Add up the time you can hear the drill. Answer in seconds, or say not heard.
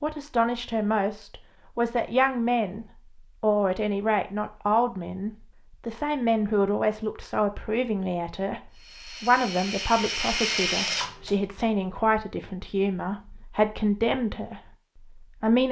3 s.